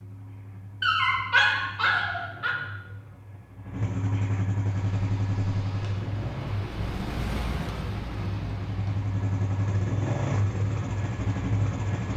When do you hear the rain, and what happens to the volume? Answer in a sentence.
You can hear the rain from 4.6 to 12.1 s, getting louder then quieter.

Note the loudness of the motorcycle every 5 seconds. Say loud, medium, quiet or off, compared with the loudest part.
medium, loud, loud.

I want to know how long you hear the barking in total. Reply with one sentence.
The barking can be heard for 2 seconds in total.